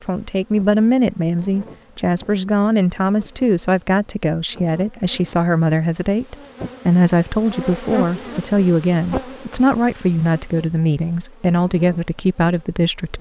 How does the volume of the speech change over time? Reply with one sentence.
The volume of the speech stays about the same.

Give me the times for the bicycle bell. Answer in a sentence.
You can't hear the bicycle bell here.